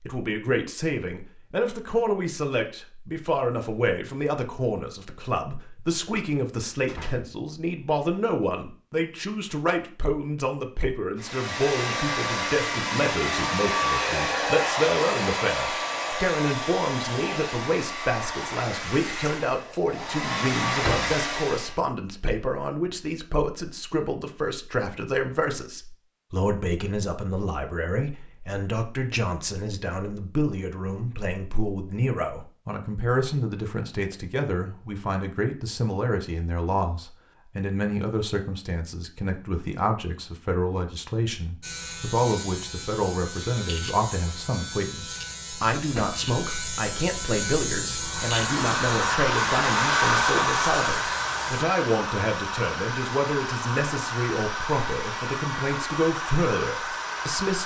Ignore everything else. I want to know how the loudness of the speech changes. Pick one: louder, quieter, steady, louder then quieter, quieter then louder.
steady.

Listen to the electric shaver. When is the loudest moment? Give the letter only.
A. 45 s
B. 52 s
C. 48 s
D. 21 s
C.